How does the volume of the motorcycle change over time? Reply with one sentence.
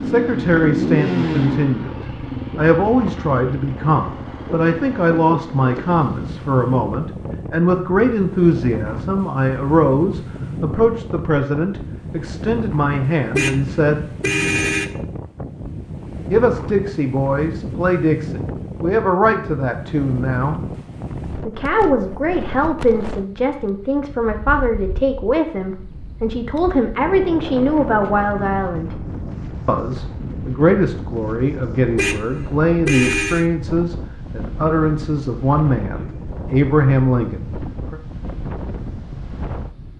The volume of the motorcycle goes down.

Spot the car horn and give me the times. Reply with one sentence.
You can hear the car horn from 13.3 to 14.9 s and from 31.9 to 33.5 s.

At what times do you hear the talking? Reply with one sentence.
The talking can be heard from 0.0 to 14.1 s, from 16.2 to 20.6 s, from 21.4 to 29.0 s and from 29.6 to 38.0 s.